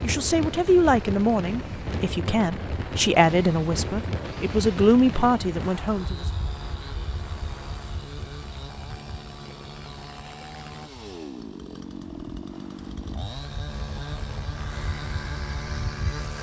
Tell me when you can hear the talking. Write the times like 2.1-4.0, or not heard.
0.0-6.2.